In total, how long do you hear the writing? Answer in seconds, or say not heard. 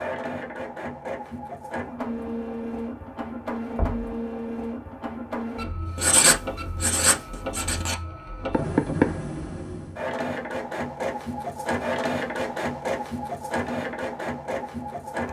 2 s.